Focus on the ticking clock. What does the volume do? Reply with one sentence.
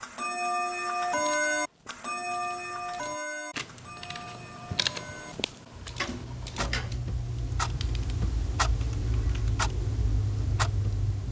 The loudness of the ticking clock goes down, then up.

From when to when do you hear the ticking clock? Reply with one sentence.
The ticking clock can be heard from 0.0 to 11.2 s.